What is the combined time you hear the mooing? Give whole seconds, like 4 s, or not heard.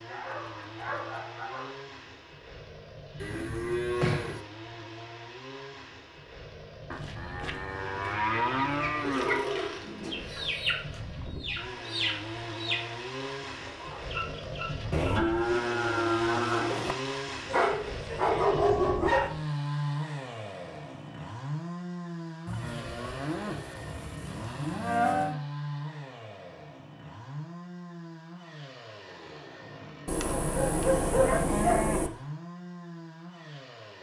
11 s.